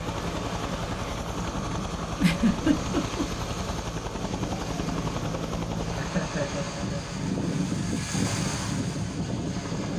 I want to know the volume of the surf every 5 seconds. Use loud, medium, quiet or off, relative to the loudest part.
medium, loud.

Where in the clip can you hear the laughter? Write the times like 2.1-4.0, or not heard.
2.2-3.2, 6.0-7.0.